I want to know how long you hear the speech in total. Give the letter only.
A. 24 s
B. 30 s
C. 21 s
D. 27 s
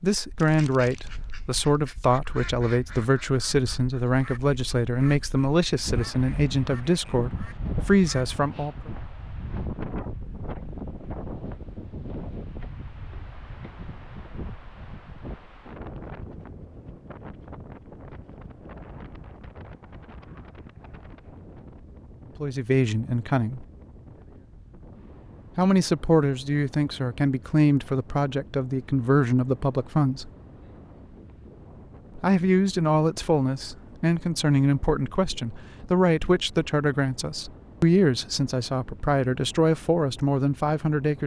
A.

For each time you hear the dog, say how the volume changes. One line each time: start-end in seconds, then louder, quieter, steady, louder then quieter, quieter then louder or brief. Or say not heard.
not heard.